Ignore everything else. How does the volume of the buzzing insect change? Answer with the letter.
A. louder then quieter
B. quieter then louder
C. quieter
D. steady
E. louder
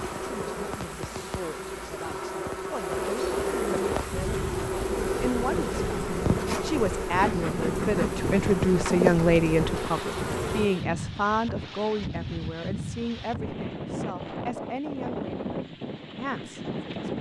E.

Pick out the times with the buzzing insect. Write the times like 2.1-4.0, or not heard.
0.0-10.8.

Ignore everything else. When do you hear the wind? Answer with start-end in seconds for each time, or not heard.
3.9-17.1.